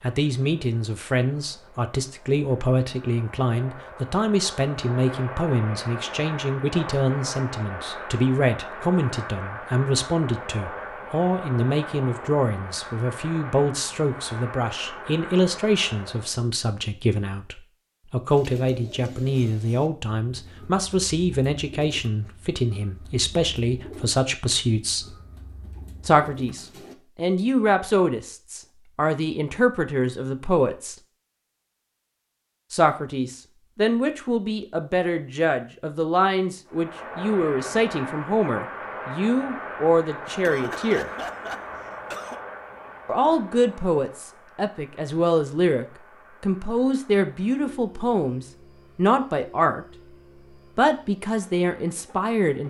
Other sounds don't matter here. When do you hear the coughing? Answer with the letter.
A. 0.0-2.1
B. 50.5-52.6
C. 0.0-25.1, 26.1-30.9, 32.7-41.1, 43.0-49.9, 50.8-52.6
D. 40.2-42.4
D.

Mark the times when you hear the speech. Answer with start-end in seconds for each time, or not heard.
0.0-25.1, 26.1-30.9, 32.7-41.1, 43.0-49.9, 50.8-52.6.